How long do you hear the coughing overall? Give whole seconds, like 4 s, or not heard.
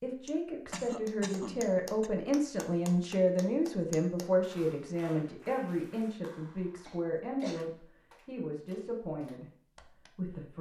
3 s.